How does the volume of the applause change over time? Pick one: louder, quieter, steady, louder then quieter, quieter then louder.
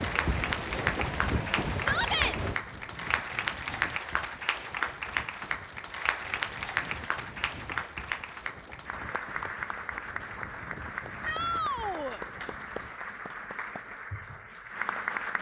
quieter.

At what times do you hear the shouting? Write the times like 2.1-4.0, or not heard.
1.8-2.4, 11.2-12.2.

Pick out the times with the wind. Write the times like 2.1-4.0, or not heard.
0.0-13.1.